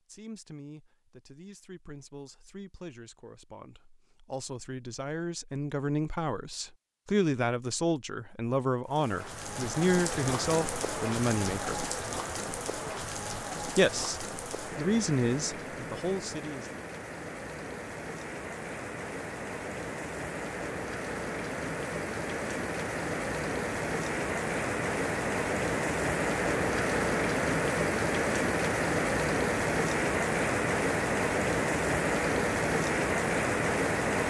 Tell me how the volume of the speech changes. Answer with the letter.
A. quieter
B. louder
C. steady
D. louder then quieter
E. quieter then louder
B.